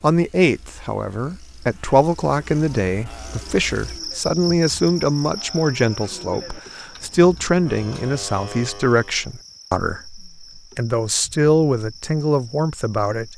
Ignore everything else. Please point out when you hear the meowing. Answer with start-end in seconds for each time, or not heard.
not heard.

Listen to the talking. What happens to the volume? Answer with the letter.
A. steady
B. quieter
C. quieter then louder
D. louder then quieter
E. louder
A.